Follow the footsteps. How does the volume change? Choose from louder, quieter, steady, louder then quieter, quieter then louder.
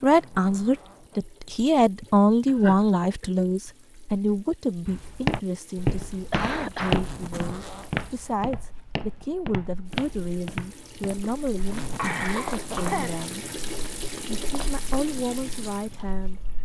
quieter.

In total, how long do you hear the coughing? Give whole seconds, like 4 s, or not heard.
4 s.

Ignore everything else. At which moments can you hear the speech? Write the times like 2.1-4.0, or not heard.
0.0-13.4, 14.3-16.4.